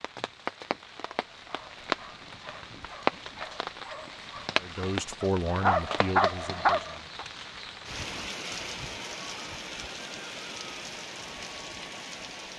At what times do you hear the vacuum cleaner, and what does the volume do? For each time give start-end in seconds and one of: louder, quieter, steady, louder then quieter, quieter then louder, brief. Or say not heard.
not heard.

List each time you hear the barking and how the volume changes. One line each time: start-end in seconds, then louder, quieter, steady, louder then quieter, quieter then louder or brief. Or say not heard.
1.1-7.2 louder.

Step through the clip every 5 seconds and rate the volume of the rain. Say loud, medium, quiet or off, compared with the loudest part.
loud, medium, medium.